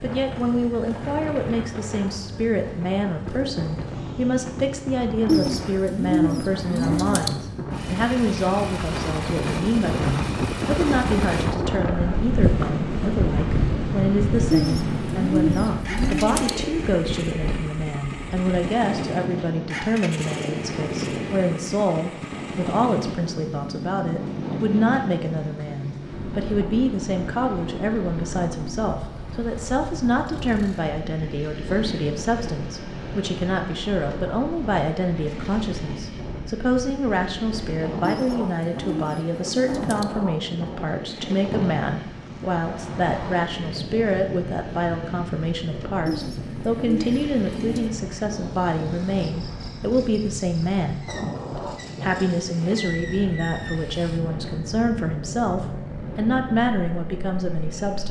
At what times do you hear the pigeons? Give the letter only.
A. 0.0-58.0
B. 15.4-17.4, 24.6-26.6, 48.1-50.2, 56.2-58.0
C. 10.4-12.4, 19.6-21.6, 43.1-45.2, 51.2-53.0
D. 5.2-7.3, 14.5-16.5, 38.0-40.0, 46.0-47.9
D.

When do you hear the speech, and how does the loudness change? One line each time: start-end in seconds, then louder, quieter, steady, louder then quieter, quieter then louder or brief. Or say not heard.
0.0-58.0 steady.